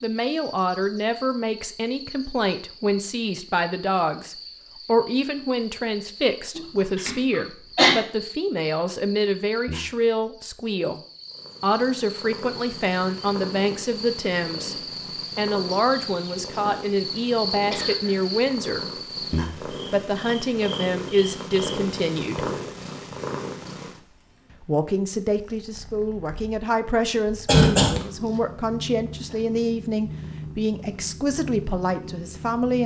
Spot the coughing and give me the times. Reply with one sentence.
You can hear the coughing from 6.5 to 8.0 s, from 17.7 to 18.2 s and from 27.4 to 28.0 s.